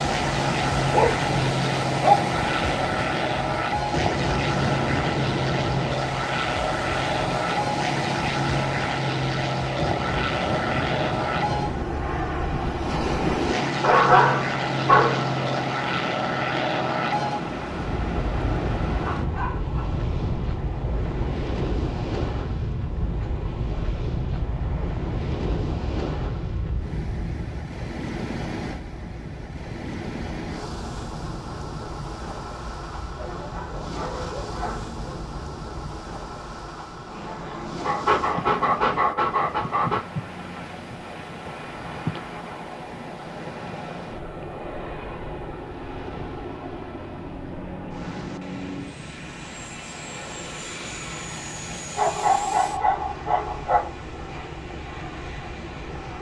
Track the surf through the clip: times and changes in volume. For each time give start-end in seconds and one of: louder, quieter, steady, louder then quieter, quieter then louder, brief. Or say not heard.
0.0-56.1 quieter.